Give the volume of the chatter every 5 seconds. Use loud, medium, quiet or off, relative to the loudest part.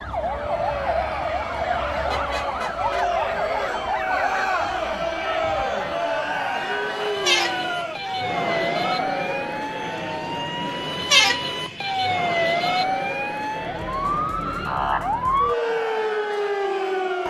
loud, loud, medium, medium.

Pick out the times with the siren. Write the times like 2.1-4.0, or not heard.
0.0-17.2.